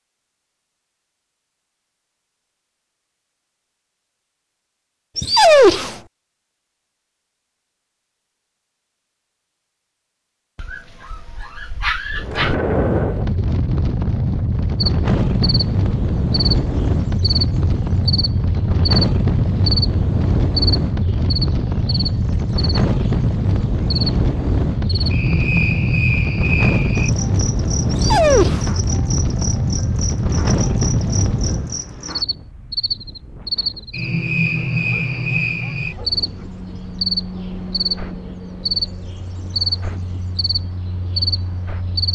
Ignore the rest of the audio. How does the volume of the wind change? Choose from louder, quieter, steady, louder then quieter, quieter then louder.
quieter.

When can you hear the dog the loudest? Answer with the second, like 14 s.
6 s.